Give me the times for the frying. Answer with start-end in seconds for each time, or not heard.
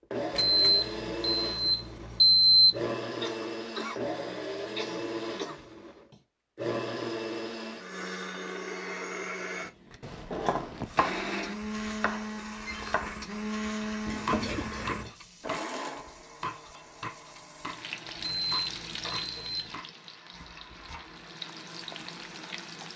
15.1-22.9.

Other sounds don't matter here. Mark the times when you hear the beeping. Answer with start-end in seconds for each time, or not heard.
0.3-2.8, 18.2-19.7.